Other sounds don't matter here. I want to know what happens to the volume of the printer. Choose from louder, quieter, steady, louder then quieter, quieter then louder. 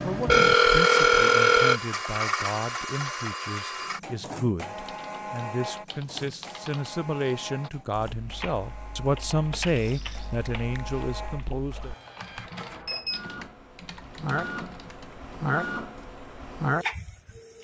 quieter then louder.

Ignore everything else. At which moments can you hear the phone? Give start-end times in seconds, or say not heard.
0.2-1.8.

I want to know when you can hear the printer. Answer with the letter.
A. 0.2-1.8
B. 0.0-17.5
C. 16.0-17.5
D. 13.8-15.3
B.